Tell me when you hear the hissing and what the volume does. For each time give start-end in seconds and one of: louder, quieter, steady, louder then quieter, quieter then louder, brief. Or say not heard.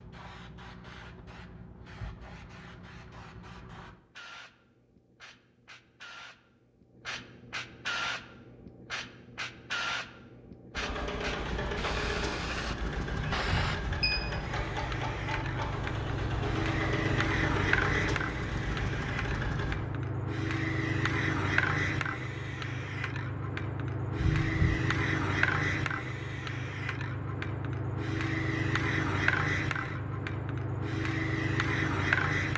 0.0-32.5 louder.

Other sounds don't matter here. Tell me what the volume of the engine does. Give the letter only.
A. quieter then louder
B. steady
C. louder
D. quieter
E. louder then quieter
B.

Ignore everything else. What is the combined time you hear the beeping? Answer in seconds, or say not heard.
2 s.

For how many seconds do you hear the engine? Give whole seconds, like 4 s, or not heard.
9 s.